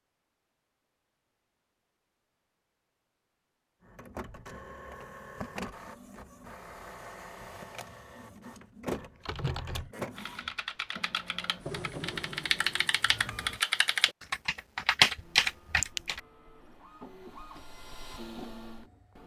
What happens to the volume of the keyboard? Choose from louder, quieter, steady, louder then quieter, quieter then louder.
louder.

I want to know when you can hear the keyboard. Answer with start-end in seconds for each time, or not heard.
9.2-16.2.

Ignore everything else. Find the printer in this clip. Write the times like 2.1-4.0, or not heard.
3.8-13.6, 15.2-19.2.